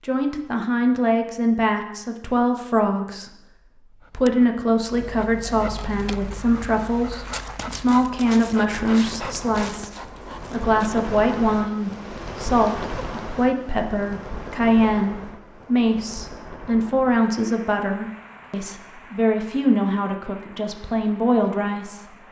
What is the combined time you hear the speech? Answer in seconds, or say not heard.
21 s.